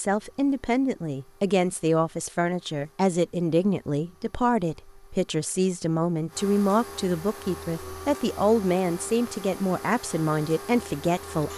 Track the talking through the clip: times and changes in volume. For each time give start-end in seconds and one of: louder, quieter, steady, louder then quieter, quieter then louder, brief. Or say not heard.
0.0-11.5 steady.